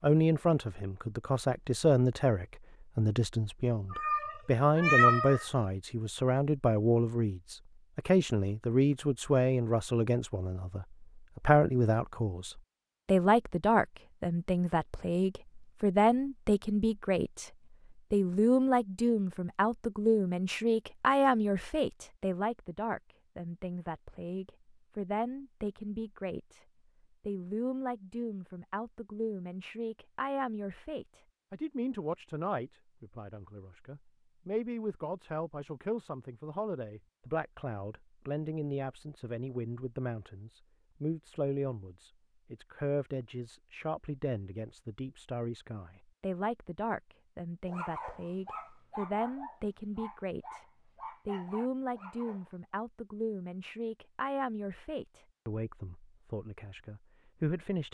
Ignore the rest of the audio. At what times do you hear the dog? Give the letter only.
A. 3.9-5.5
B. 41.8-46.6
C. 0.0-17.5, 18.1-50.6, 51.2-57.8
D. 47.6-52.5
D.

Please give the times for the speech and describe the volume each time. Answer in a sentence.
The speech can be heard from 0.0 to 17.5 s, at a steady volume; from 18.1 to 50.6 s, getting quieter; and from 51.2 to 57.8 s, getting quieter.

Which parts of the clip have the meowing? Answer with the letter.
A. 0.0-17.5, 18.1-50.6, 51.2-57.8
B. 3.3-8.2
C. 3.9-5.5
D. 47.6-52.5
C.